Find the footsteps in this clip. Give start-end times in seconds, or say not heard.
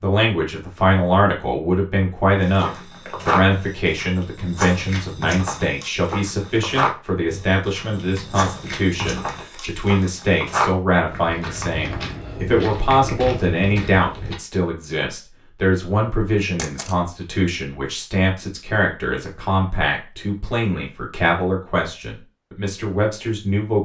2.4-14.3.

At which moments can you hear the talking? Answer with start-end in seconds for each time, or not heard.
0.0-23.8.